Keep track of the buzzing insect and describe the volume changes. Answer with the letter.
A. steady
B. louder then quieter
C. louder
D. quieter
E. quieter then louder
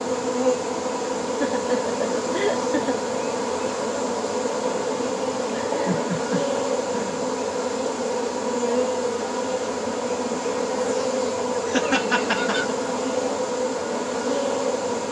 A.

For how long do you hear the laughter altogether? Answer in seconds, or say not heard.
5 s.